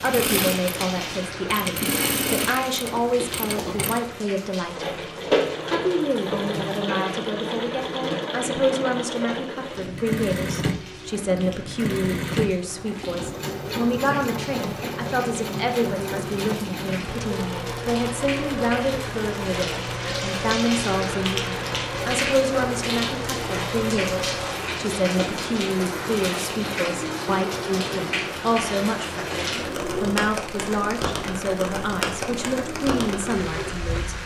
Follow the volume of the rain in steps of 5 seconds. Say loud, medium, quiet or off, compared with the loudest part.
medium, quiet, quiet, medium, loud, loud, loud.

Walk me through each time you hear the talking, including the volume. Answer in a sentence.
The talking can be heard from 0.0 to 4.8 s, at a steady volume; and from 5.7 to 34.2 s, at a steady volume.